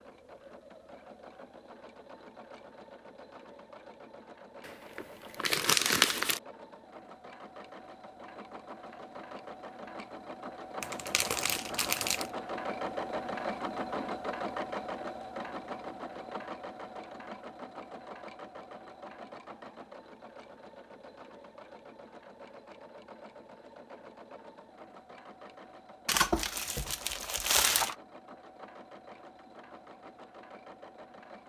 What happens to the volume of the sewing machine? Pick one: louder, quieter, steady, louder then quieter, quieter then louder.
louder then quieter.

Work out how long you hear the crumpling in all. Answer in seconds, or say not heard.
5 s.